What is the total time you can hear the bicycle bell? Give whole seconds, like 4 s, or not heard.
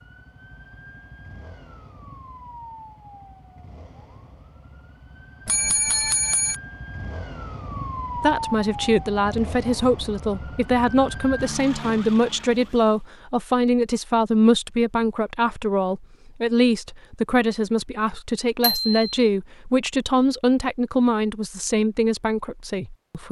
2 s.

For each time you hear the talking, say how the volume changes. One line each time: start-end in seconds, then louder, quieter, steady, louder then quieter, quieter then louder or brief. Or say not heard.
8.2-23.2 steady.